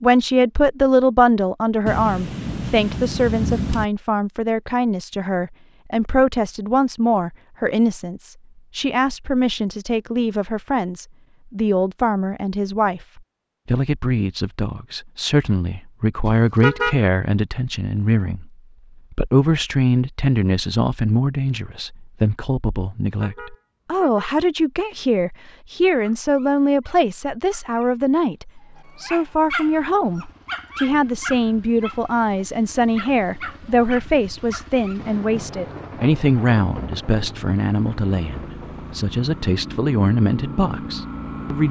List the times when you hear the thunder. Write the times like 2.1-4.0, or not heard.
1.9-3.9, 35.0-39.0.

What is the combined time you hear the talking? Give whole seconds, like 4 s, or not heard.
41 s.